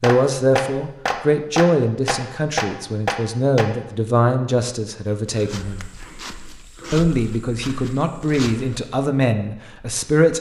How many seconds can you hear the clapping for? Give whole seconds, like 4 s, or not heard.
4 s.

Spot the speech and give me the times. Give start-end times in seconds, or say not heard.
0.0-5.9, 6.9-10.3.